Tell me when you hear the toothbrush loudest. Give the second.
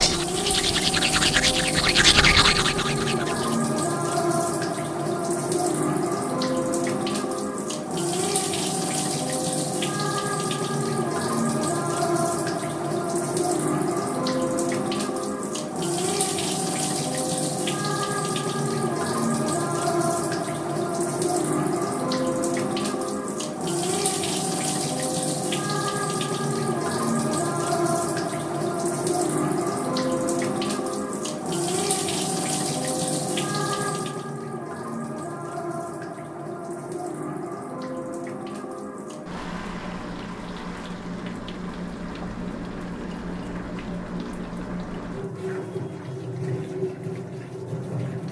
2 s.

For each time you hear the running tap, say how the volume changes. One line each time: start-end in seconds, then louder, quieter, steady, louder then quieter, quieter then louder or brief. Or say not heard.
0.0-48.2 quieter.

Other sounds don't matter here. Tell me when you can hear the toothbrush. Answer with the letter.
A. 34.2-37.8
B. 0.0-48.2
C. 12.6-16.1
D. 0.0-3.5
D.